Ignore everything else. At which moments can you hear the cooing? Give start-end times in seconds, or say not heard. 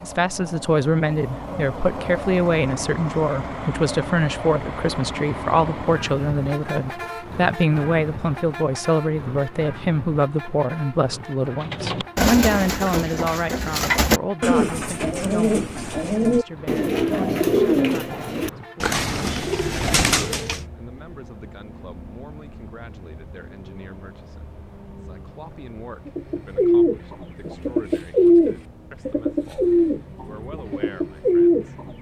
11.6-20.6, 26.1-31.9.